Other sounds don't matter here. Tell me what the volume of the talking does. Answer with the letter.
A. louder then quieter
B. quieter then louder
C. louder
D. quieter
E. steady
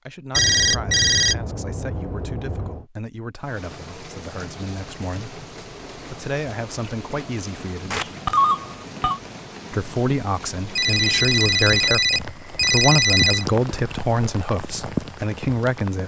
C.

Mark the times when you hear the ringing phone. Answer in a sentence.
The ringing phone can be heard from 0.3 to 2.9 s, from 7.9 to 9.2 s and from 10.8 to 13.4 s.